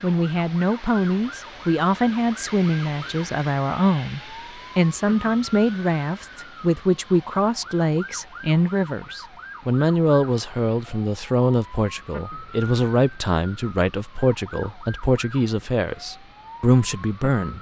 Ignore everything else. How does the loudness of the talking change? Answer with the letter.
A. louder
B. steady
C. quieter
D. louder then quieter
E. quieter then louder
B.